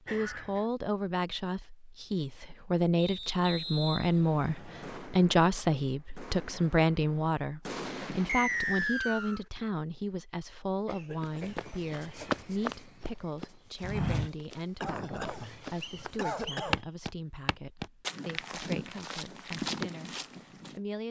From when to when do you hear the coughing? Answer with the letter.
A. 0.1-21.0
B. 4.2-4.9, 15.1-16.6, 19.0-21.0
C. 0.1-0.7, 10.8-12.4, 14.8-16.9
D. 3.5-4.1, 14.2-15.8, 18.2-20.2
C.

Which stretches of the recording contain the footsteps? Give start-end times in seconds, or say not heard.
11.2-20.8.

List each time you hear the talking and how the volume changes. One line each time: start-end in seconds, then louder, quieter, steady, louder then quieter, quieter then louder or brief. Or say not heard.
0.1-21.0 quieter.